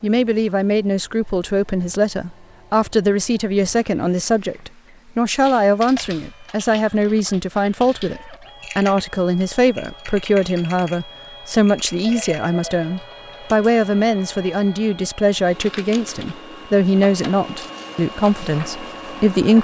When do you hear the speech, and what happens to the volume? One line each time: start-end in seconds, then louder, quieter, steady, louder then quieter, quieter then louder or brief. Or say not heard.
0.0-19.6 steady.